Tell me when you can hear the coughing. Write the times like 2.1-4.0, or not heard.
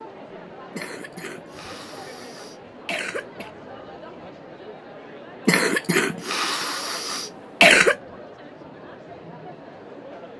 0.8-3.5, 5.5-8.0.